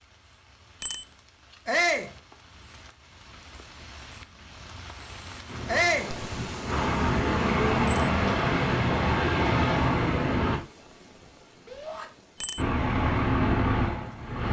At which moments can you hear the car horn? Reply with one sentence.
You can't hear the car horn here.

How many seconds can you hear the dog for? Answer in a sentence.
The dog can't be heard in this clip.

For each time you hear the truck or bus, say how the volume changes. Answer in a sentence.
The truck or bus can be heard from 5.5 to 10.6 s, getting louder; and briefly from 12.6 to 14.4 s.